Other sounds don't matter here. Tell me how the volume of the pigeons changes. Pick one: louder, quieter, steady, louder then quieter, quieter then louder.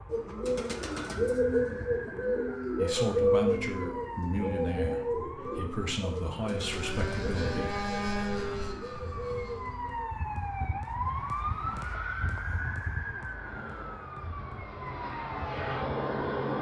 quieter.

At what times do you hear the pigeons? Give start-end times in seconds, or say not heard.
0.1-10.2.